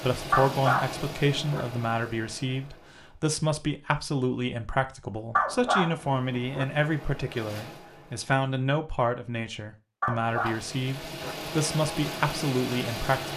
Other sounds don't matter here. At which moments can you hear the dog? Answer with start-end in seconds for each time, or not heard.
0.3-1.6, 5.3-6.7, 10.0-11.3.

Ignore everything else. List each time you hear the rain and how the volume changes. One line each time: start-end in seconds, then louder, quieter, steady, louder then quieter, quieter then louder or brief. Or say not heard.
not heard.